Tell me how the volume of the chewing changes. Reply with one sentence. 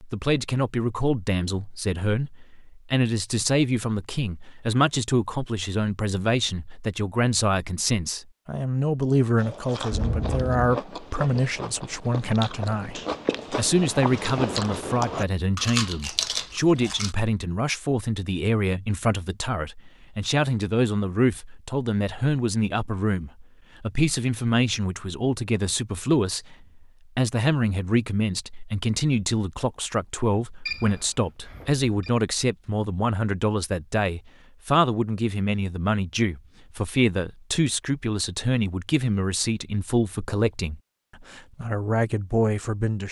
The loudness of the chewing goes up.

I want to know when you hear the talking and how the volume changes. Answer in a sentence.
The talking can be heard from 0.0 to 43.0 s, at a steady volume.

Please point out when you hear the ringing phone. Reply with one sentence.
The ringing phone can be heard from 9.9 to 10.8 s and from 30.6 to 32.1 s.